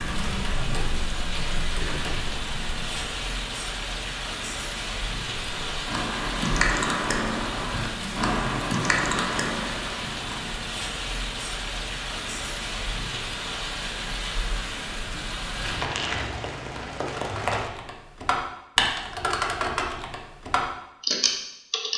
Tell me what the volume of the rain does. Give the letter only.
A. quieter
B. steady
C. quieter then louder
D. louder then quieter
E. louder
B.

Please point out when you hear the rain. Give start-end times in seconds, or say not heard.
0.0-17.7.